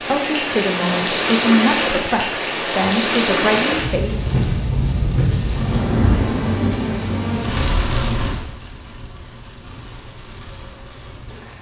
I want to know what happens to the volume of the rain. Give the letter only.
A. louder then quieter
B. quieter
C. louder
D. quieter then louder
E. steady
B.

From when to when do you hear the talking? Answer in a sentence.
The talking can be heard from 0.0 to 4.4 s.